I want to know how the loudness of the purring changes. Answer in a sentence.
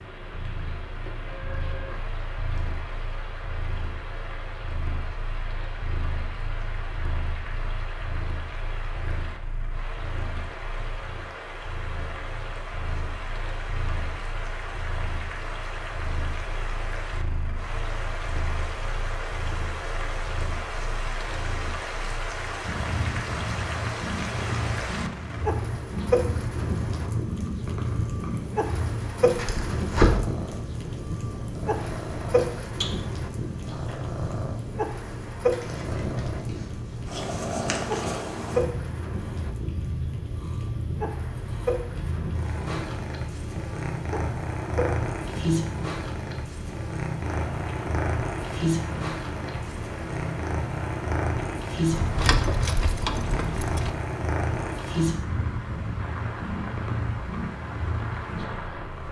The loudness of the purring goes up.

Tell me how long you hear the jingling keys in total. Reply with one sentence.
The jingling keys can be heard for 2 seconds in total.